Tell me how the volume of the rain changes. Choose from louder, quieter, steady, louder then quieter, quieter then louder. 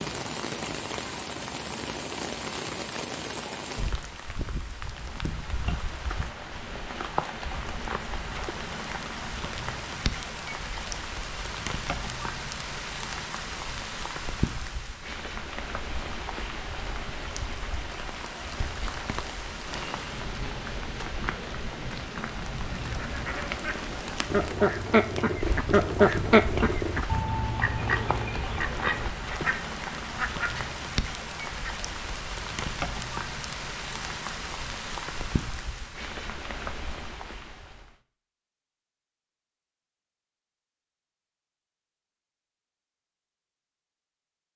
steady.